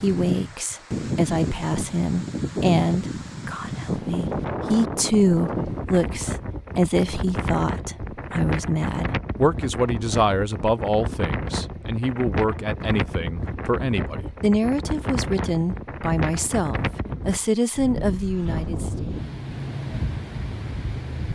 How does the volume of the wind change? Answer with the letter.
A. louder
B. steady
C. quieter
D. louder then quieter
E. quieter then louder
B.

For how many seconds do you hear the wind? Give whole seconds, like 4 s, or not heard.
21 s.